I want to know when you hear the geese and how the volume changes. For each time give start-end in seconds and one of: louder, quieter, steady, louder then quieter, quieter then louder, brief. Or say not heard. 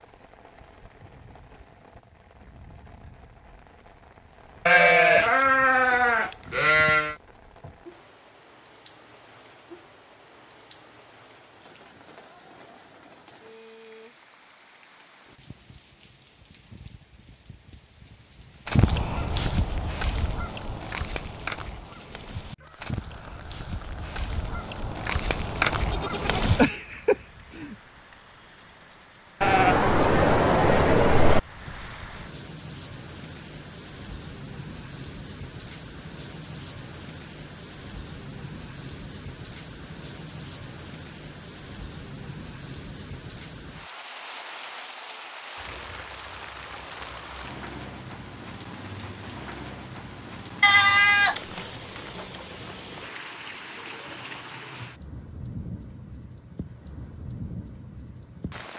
18.6-26.7 quieter then louder.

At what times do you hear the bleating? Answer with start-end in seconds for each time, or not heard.
4.7-7.2, 25.9-27.8, 29.4-31.4, 50.6-51.4.